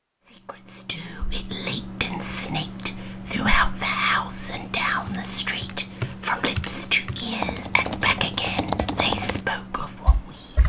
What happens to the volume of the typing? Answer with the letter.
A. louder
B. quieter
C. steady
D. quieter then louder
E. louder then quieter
E.